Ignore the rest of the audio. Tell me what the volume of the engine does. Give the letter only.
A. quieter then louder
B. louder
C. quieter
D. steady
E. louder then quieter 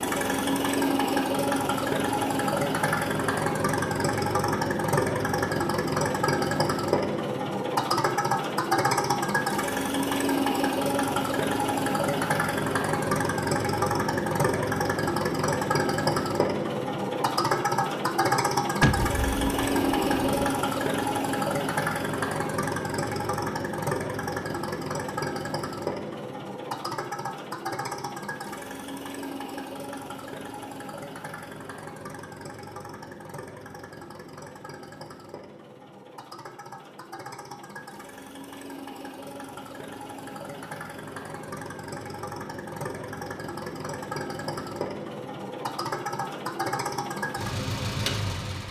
A.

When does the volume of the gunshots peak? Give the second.
19 s.